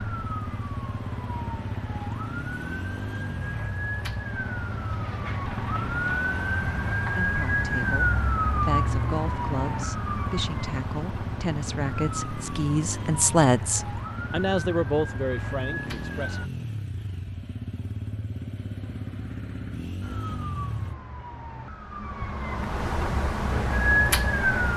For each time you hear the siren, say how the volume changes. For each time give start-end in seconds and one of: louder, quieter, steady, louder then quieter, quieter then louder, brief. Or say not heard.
0.0-16.5 louder then quieter
20.0-24.7 louder.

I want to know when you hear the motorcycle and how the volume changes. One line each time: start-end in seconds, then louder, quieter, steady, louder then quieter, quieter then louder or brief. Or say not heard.
0.0-20.9 steady.